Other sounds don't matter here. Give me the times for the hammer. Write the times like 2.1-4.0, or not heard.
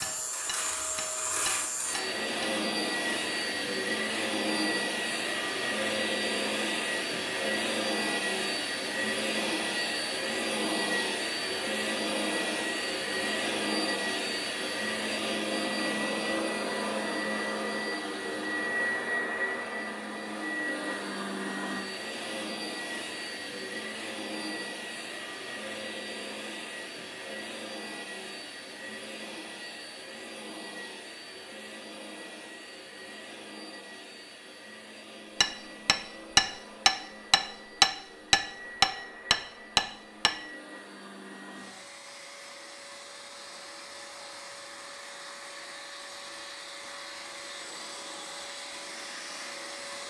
0.0-2.5, 35.4-40.4.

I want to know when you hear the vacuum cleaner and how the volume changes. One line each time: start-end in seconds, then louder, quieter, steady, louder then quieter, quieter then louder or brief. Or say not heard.
0.0-50.0 quieter.